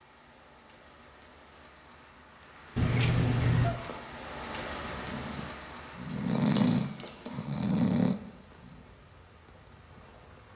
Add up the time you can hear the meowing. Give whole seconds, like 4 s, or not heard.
2 s.